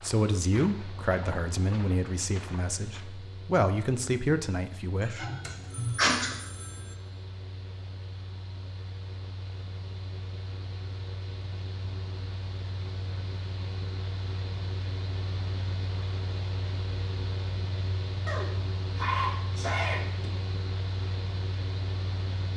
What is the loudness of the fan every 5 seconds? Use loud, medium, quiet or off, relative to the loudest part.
medium, medium, loud, loud, loud.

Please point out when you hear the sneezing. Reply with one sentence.
The sneezing can be heard from 5.0 to 6.3 s and from 18.2 to 20.3 s.